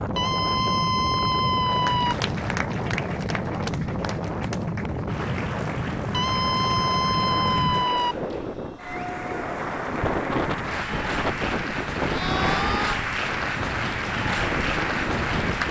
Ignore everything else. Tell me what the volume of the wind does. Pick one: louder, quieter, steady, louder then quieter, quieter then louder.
steady.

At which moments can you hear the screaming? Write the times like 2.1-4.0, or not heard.
0.1-2.1, 6.1-8.2, 12.1-13.0.